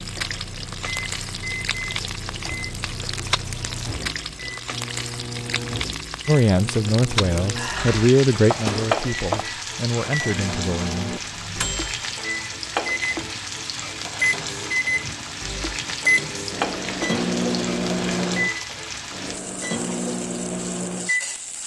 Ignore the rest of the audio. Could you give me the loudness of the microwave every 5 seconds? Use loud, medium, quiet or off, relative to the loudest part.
medium, medium, loud, loud, loud.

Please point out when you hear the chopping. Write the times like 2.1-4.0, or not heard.
8.5-9.4.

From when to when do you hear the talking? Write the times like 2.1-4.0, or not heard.
6.2-11.2.